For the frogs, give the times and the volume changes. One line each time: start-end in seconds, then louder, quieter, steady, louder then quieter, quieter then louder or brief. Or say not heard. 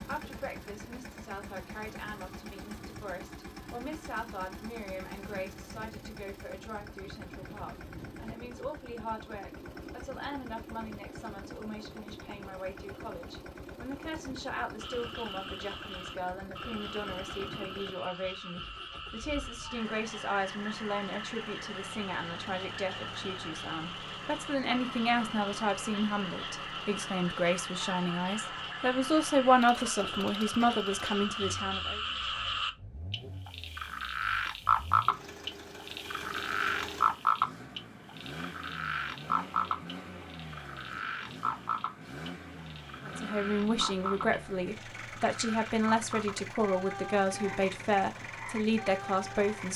14.8-49.7 louder then quieter.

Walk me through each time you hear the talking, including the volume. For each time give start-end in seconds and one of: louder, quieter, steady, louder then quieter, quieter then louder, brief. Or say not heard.
0.0-32.0 louder
43.0-49.7 steady.